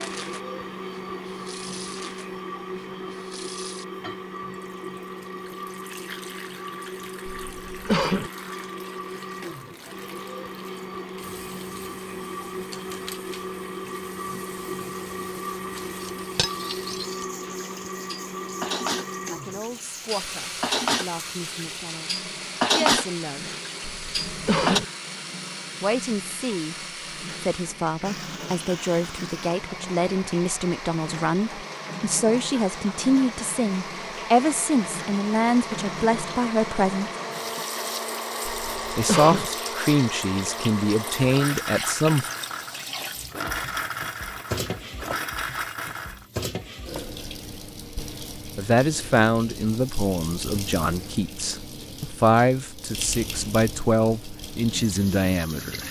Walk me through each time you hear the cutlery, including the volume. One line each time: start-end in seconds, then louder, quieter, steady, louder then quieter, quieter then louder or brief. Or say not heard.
16.0-24.8 louder.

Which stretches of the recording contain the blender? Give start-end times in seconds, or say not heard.
0.0-46.2.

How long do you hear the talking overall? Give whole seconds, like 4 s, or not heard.
26 s.